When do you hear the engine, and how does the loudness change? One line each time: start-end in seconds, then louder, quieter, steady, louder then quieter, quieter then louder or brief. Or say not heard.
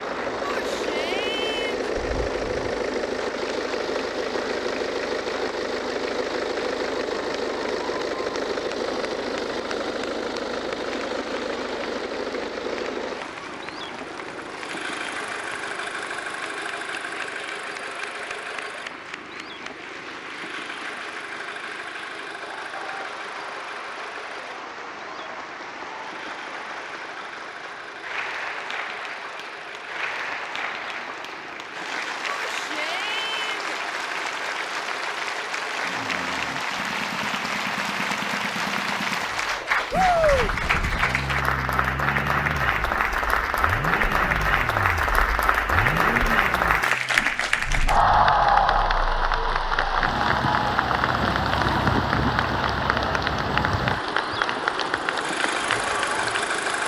0.0-56.8 quieter then louder.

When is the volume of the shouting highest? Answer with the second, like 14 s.
40 s.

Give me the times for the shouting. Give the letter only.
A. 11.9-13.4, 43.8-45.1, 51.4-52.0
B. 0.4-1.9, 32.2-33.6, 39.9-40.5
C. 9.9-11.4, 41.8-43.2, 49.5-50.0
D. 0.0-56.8
B.